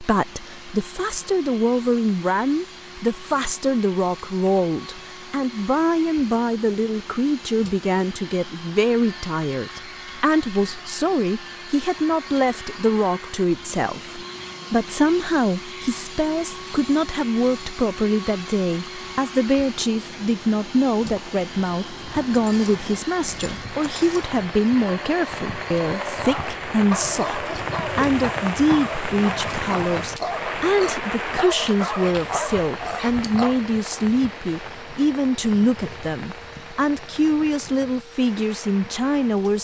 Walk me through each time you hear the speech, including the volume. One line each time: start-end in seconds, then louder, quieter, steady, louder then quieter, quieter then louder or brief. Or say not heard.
0.0-39.5 steady.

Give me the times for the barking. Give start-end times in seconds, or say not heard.
22.1-33.5.